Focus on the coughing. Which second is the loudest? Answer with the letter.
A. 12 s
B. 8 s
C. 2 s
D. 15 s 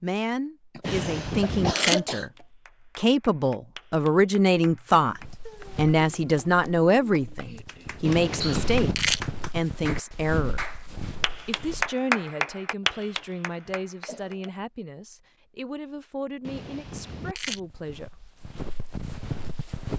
C.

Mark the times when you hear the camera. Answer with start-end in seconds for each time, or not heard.
0.8-2.0, 8.1-9.2, 16.4-17.6.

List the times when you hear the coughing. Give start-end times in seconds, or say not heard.
0.8-2.2, 7.4-8.7, 13.7-14.6.